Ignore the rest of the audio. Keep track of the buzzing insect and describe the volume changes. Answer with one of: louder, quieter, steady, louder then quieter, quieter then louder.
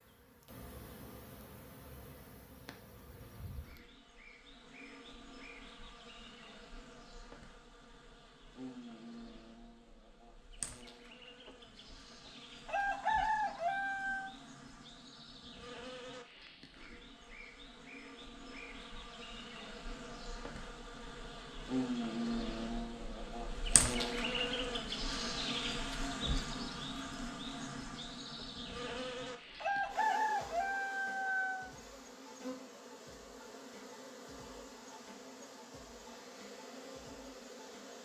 louder then quieter.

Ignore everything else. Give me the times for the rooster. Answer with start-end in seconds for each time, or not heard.
11.4-14.3, 29.6-31.7.